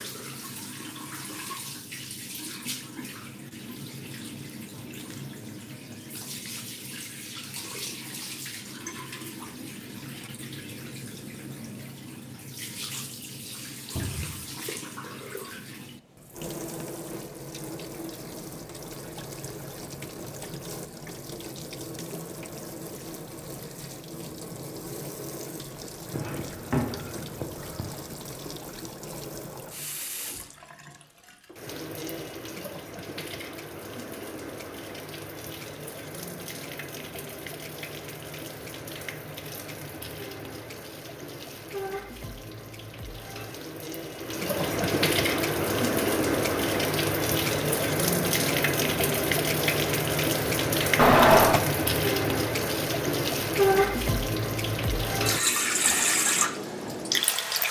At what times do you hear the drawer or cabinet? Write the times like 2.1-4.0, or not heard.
13.9-14.3, 26.1-27.9, 51.0-51.6.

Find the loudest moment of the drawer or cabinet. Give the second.
51 s.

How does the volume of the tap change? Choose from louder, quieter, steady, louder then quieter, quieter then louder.
louder.